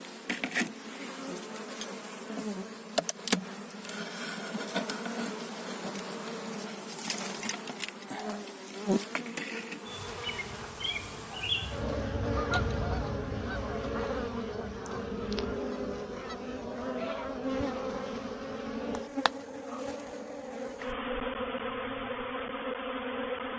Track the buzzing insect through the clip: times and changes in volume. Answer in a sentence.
The buzzing insect can be heard from 0.0 to 23.5 s, at a steady volume.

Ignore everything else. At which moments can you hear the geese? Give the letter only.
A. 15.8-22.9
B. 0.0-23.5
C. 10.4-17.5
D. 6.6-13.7
C.